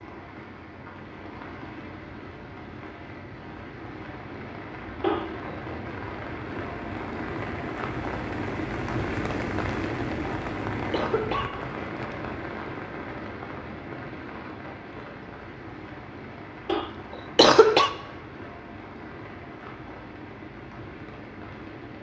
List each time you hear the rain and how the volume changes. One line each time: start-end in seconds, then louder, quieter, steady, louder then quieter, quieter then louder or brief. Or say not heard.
0.0-21.9 louder then quieter.